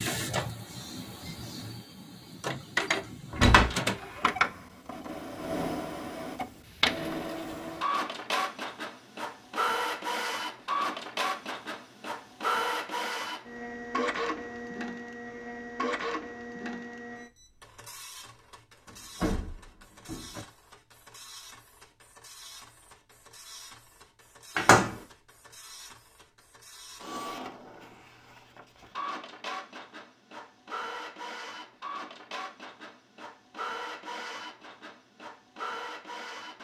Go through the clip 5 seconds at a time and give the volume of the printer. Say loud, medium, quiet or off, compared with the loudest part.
loud, loud, loud, medium, quiet, medium, medium, medium.